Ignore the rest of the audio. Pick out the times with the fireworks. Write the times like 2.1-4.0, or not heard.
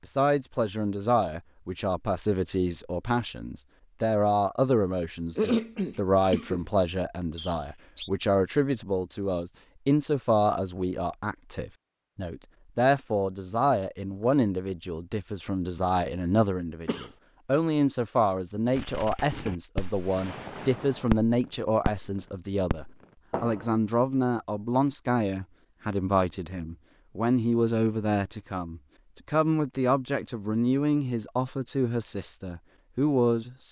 18.7-22.1, 22.7-23.8.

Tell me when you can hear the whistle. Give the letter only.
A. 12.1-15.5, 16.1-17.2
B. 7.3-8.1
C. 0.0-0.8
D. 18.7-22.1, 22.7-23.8
B.